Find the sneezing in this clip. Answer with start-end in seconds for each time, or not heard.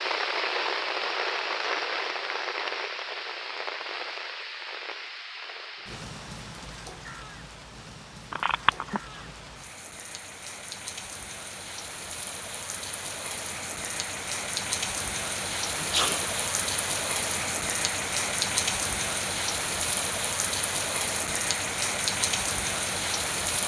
8.9-9.4, 15.8-16.2.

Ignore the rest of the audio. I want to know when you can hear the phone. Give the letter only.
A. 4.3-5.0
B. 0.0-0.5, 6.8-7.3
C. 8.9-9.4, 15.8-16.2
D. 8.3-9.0
D.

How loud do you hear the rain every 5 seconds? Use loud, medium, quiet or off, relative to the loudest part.
loud, quiet, medium, loud, loud.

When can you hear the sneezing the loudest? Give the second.
16 s.